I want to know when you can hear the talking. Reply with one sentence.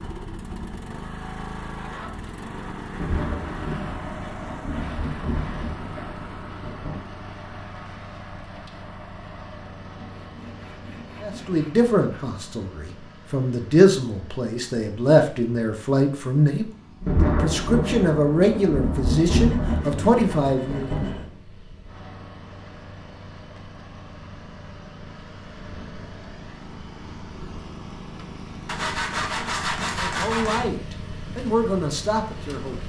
The talking can be heard from 11.2 to 20.9 s and from 29.9 to 32.8 s.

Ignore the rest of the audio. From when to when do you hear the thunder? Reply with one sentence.
The thunder can be heard from 3.0 to 7.0 s and from 17.0 to 21.2 s.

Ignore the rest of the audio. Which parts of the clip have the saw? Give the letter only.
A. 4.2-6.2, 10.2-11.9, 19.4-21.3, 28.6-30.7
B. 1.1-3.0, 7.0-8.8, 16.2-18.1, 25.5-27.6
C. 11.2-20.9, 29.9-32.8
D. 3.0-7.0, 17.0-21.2
A.